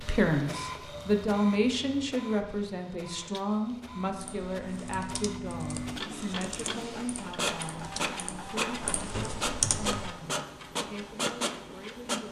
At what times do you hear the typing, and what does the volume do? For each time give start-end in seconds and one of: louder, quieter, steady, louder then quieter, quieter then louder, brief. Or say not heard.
4.2-10.1 louder.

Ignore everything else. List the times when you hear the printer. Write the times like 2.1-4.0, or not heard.
0.0-12.2.